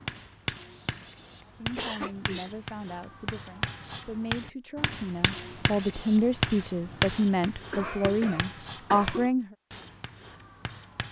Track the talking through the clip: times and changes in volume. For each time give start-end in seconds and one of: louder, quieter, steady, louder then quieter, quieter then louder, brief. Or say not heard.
1.6-9.6 louder.